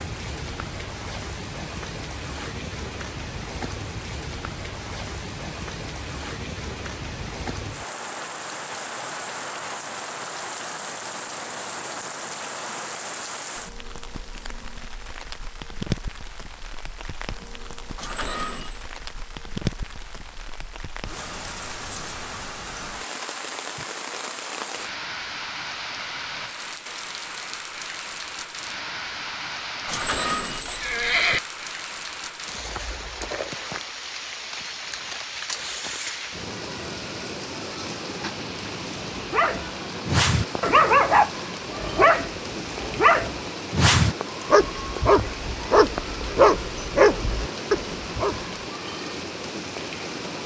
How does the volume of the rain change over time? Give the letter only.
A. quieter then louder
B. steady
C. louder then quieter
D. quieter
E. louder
B.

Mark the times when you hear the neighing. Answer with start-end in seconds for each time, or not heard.
17.9-18.8, 29.9-31.4.